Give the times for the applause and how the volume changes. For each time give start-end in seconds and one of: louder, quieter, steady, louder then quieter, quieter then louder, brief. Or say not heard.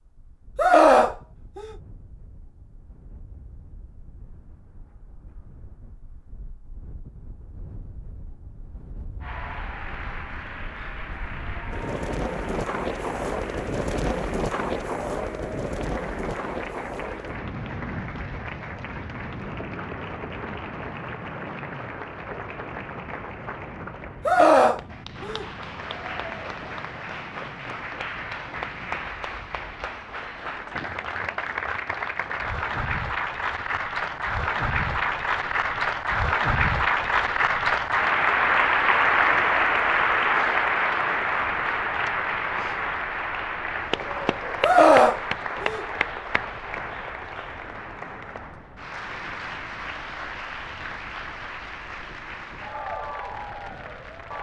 9.2-54.3 louder then quieter.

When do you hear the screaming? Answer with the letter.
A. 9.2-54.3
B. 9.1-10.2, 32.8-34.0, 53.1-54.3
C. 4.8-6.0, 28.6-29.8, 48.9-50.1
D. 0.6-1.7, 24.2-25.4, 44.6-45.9
D.